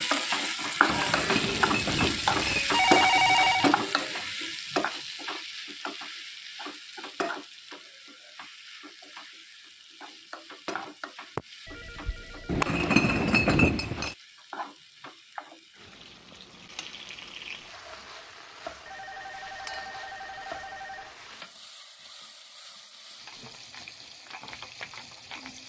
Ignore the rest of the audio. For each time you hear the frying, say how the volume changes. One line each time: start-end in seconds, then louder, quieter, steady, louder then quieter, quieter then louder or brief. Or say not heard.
0.0-25.6 quieter.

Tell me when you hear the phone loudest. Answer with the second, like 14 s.
3 s.